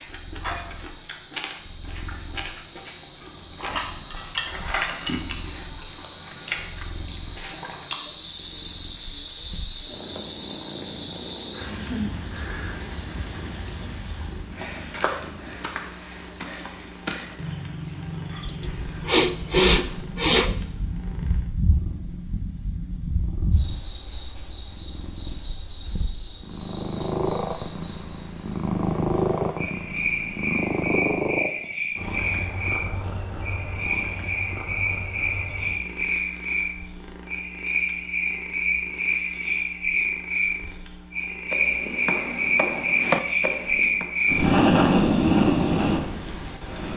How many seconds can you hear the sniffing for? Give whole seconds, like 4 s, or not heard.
2 s.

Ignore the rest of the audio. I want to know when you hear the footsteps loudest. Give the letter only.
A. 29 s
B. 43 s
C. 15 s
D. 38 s
B.